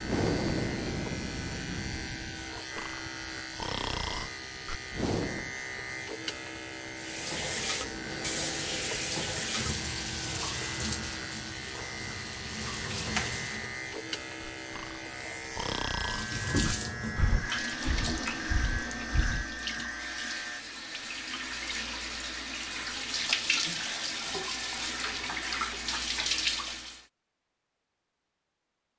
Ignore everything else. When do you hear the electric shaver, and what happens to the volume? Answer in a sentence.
You can hear the electric shaver from 0.0 to 20.6 s, at a steady volume.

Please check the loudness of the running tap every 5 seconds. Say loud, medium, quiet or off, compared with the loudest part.
off, loud, medium, loud, loud, loud.